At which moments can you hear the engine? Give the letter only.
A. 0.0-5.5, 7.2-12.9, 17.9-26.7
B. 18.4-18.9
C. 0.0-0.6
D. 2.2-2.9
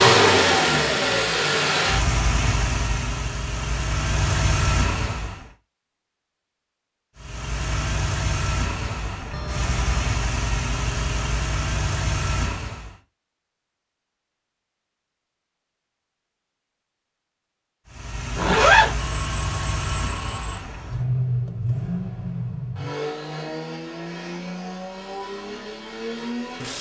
A.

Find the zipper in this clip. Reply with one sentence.
The zipper can be heard from 18.4 to 18.9 s.